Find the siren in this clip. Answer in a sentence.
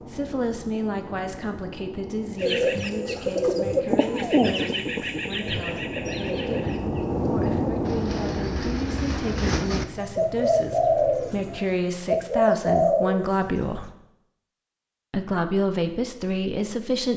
The siren can't be heard in this clip.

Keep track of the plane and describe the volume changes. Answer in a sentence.
The loudness of the plane goes up, then down.